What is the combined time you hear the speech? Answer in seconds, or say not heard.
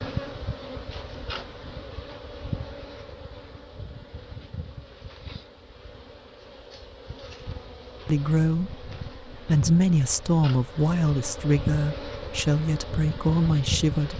6 s.